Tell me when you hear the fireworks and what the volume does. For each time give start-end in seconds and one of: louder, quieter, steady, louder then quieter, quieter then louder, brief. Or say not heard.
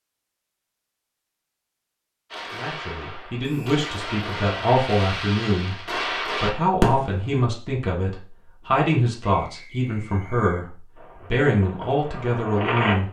2.3-7.5 louder
10.9-13.0 brief.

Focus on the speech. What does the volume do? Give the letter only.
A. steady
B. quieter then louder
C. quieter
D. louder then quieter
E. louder
A.